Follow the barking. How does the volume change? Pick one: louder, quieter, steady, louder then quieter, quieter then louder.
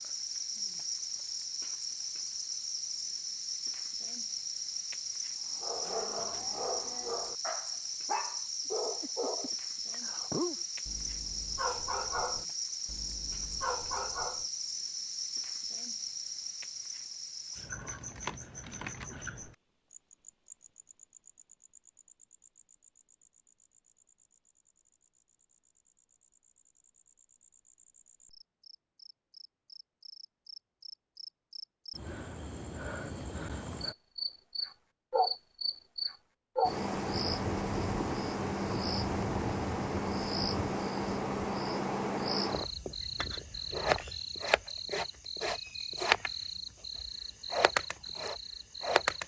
steady.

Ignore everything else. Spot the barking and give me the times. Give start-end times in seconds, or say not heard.
5.5-14.4.